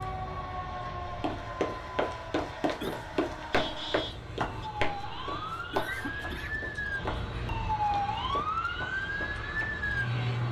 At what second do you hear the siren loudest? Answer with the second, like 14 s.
8 s.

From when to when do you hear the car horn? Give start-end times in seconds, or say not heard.
3.5-4.7.